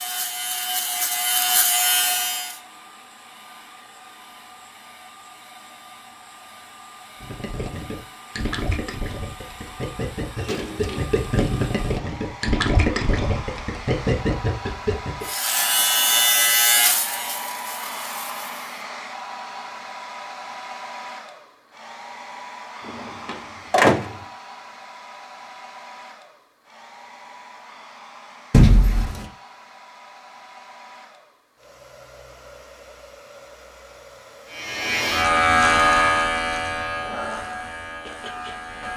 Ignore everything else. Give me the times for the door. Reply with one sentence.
The door can be heard from 10.3 to 11.2 s, from 23.2 to 24.1 s and from 28.5 to 29.2 s.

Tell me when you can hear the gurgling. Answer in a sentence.
You can hear the gurgling from 7.2 to 15.2 s.